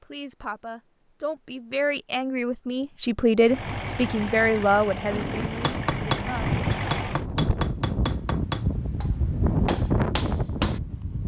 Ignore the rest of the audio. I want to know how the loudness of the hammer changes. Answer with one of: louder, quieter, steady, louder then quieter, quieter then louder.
quieter then louder.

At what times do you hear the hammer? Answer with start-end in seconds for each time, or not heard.
5.6-10.8.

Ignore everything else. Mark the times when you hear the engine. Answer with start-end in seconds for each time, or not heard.
3.4-7.2.